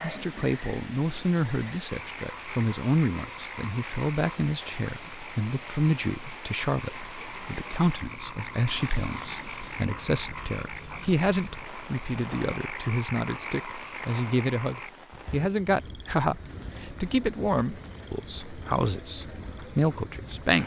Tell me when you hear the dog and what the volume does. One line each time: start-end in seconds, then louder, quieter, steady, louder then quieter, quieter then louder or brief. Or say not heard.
not heard.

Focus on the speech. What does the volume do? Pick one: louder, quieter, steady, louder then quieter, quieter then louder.
steady.